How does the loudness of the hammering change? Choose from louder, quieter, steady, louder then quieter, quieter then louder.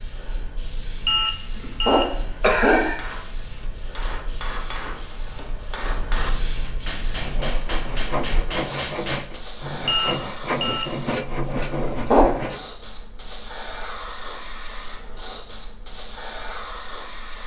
louder.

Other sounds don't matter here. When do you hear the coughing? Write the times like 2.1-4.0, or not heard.
1.6-3.0, 11.8-12.3.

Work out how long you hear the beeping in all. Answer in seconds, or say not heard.
3 s.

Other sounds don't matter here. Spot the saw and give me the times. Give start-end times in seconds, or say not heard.
7.2-12.7.